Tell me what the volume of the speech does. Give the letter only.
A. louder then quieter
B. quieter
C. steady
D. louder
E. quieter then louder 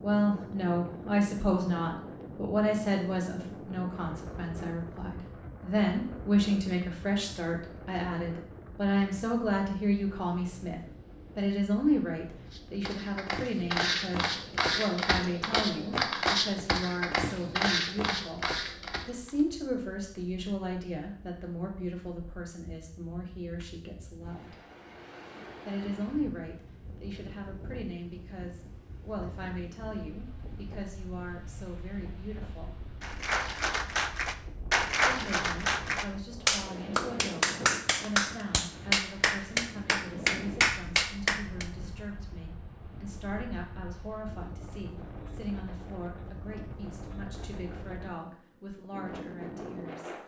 B.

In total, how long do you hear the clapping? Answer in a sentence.
The clapping can be heard for 9 seconds in total.